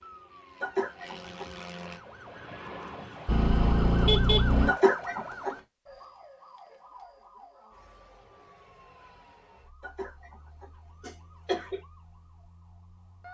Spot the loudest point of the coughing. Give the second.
5 s.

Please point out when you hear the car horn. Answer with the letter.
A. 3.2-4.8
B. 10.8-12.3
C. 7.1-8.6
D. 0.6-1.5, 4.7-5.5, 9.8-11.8
A.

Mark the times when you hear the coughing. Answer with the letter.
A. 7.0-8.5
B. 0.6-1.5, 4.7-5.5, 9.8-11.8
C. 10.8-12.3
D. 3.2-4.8
B.